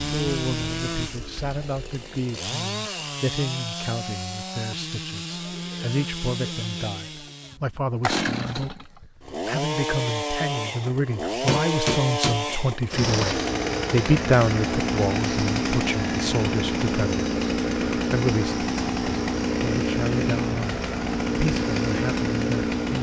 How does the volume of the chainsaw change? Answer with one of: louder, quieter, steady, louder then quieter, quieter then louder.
louder.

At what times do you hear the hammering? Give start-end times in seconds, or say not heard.
11.4-13.0.